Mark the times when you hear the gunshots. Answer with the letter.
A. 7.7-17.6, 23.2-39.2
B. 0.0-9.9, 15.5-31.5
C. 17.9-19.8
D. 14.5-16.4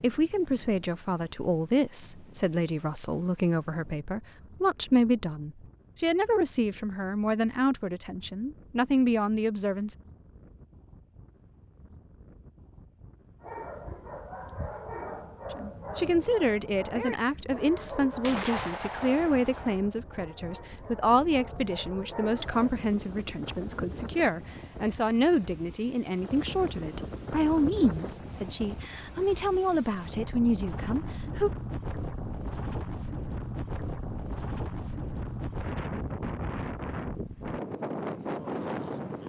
C.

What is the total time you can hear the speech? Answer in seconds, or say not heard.
26 s.